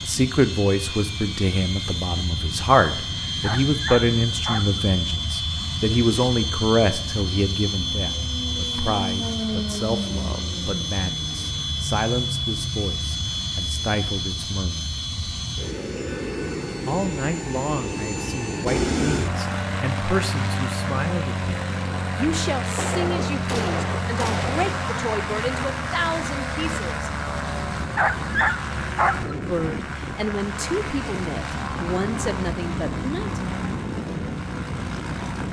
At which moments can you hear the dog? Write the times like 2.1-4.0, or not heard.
3.4-4.8, 27.8-29.4.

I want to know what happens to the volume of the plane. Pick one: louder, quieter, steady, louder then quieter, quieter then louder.
steady.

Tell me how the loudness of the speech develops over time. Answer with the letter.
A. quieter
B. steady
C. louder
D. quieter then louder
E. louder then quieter
A.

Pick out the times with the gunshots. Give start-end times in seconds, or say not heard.
22.8-24.6.